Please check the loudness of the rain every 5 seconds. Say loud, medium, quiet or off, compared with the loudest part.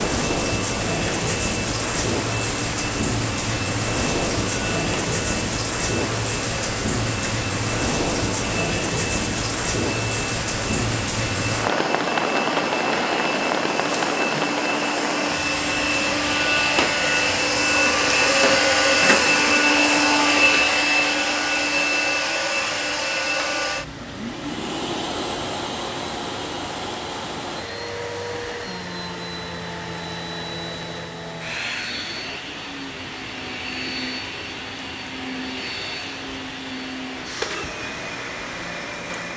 loud, loud, loud, medium, quiet, quiet, quiet, quiet.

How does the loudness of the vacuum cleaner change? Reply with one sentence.
The loudness of the vacuum cleaner goes up, then down.